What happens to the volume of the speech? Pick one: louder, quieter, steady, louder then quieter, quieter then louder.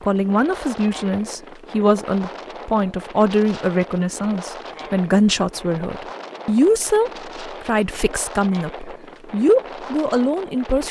steady.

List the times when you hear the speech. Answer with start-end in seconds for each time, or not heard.
0.0-10.8.